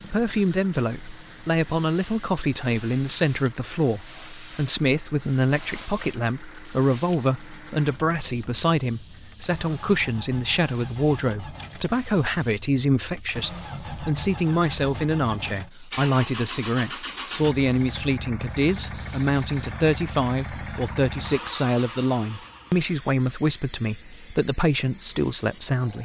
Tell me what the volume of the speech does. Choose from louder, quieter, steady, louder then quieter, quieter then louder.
steady.